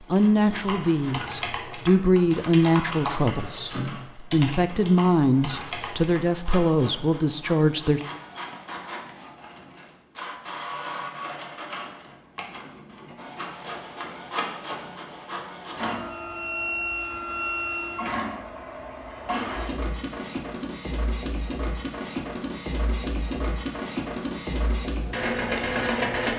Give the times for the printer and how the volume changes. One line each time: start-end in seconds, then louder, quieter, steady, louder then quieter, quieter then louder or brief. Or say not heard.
0.0-26.3 louder.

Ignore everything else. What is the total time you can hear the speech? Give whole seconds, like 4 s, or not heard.
8 s.